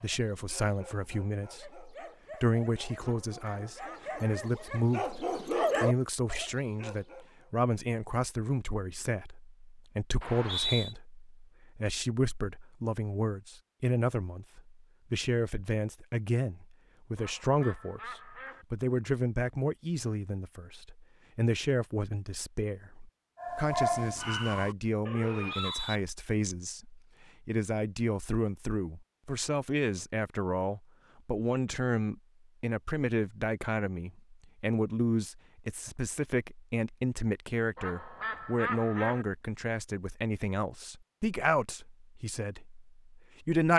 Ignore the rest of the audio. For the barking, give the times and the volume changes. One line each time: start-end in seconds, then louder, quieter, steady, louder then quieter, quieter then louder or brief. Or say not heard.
0.0-7.5 louder
23.4-26.0 brief.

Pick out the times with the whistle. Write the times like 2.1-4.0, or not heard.
10.2-10.9, 25.2-26.0.